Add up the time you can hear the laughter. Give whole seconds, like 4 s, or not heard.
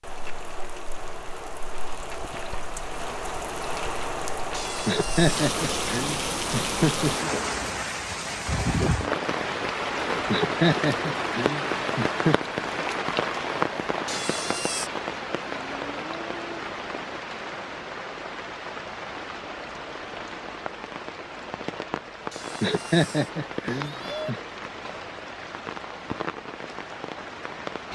6 s.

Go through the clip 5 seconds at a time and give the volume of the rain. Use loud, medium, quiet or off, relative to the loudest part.
medium, loud, loud, medium, medium, medium.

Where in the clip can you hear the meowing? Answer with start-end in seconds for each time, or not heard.
4.5-5.5, 14.1-14.9, 22.3-24.3.